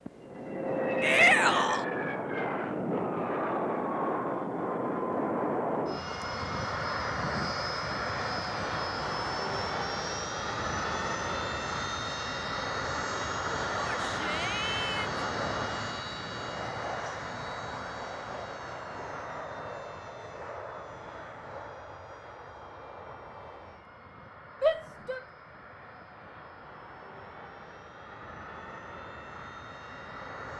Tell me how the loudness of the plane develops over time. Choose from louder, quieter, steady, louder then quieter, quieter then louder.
quieter.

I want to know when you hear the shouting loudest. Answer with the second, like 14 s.
1 s.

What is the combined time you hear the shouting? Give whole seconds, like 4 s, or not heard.
3 s.